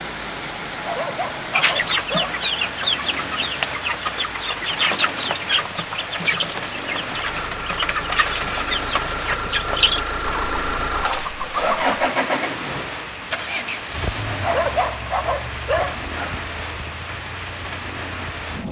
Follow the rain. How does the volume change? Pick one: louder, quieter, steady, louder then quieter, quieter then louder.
steady.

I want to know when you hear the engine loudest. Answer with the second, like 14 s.
12 s.